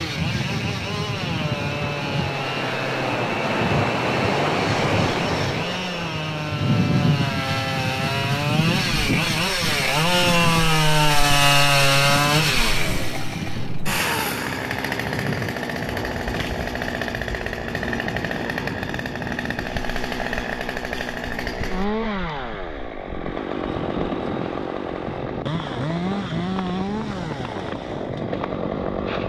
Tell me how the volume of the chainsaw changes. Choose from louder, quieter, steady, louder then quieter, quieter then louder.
louder then quieter.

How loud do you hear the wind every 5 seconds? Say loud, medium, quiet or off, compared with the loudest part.
loud, loud, medium, medium, medium, medium.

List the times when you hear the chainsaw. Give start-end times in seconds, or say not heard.
0.0-29.2.